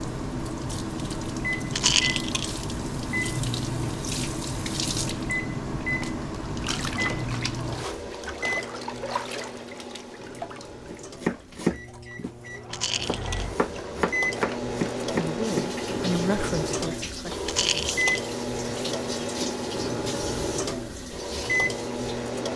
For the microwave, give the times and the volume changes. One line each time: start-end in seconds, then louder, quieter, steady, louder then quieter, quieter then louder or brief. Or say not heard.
0.0-22.5 quieter then louder.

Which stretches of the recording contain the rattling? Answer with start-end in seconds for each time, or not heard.
1.7-2.5, 12.7-13.4, 17.4-18.2.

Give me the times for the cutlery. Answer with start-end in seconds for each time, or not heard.
not heard.